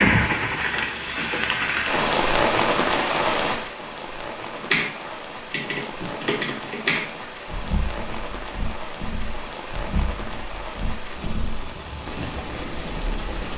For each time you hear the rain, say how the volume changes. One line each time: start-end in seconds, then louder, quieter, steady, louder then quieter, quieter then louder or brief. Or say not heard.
0.0-13.5 quieter.